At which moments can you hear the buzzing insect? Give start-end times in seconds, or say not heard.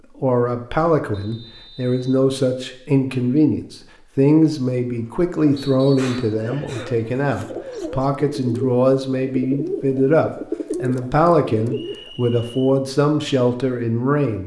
not heard.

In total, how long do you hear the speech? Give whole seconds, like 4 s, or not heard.
14 s.